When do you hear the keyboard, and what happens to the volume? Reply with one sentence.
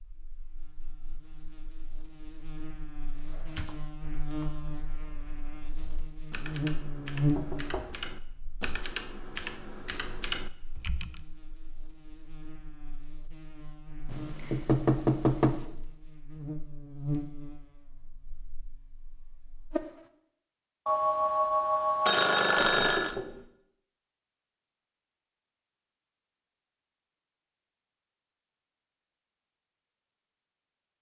You can hear the keyboard from 3.1 to 11.2 s, getting quieter then louder.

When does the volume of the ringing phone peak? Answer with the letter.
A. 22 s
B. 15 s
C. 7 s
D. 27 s
A.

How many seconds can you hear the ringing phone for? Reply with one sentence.
The ringing phone can be heard for 2 seconds in total.